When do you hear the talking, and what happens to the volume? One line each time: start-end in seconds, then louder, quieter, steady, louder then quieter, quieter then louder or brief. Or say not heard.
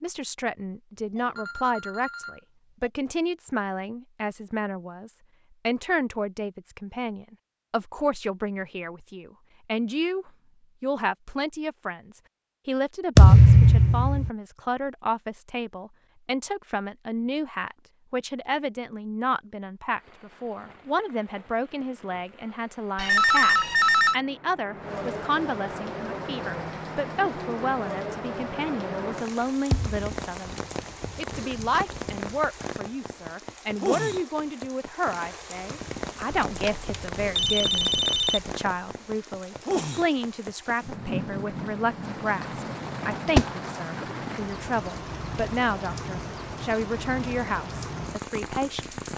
0.0-49.0 steady.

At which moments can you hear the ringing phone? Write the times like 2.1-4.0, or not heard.
1.1-2.9, 22.9-24.1, 36.5-38.5.